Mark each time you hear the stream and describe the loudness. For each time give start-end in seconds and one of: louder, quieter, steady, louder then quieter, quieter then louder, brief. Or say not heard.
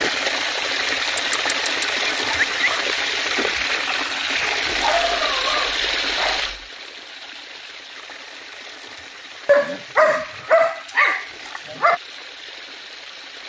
0.0-13.4 quieter.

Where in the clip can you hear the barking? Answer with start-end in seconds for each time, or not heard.
1.1-2.8, 4.7-6.5, 9.4-12.0.